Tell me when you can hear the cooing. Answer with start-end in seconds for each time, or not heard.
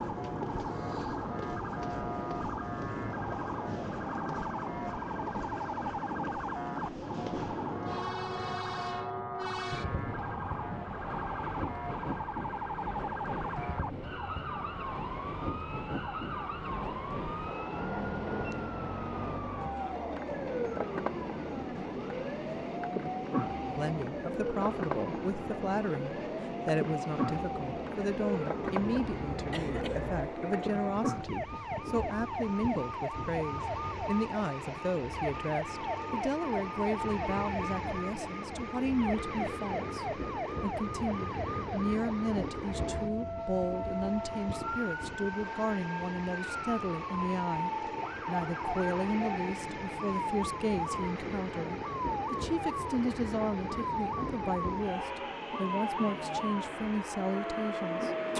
not heard.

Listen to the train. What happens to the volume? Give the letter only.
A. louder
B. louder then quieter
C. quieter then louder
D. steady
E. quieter
D.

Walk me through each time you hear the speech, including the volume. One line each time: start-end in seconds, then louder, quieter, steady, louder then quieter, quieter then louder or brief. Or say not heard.
23.6-58.3 steady.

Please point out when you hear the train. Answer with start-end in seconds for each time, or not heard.
0.0-58.3.